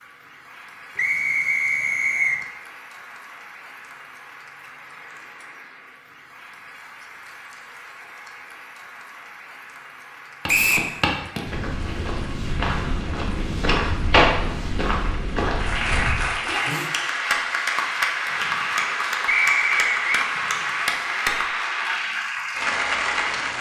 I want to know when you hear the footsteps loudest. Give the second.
14 s.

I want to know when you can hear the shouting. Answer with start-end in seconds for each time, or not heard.
16.4-16.9.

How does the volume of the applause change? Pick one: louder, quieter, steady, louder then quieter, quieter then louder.
louder.